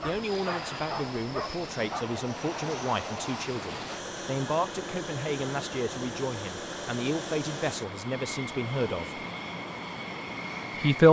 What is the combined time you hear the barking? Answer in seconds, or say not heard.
2 s.